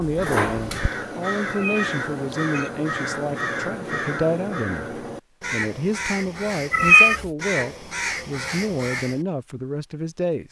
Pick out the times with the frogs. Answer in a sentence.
The frogs can't be heard in this clip.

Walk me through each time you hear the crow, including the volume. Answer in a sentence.
You can hear the crow from 0.0 to 9.2 s, at a steady volume.